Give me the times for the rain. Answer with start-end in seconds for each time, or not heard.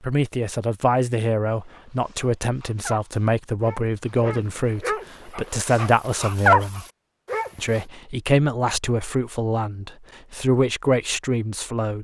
not heard.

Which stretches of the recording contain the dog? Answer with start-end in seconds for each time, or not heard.
1.6-7.8.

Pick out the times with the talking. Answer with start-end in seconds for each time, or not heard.
0.0-6.8, 7.5-11.9.